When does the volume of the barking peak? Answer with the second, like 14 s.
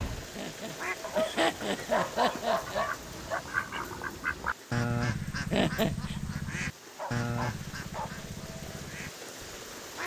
2 s.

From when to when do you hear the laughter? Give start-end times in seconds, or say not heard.
0.3-2.9, 5.5-6.2.